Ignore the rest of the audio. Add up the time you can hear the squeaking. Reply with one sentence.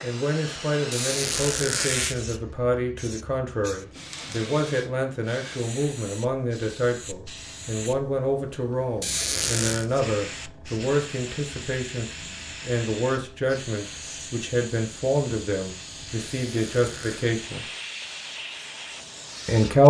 You can hear the squeaking for 3 seconds altogether.